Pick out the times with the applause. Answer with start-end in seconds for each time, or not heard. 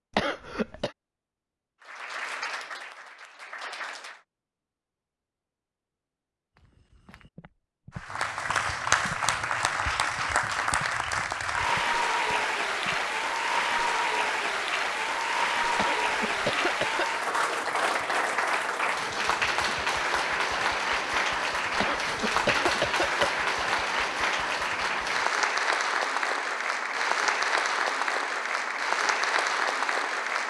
1.8-4.2, 8.0-30.4.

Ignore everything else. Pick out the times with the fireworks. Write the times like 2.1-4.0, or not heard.
not heard.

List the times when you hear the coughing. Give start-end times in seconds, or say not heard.
0.1-0.9, 15.8-17.1, 21.8-23.3.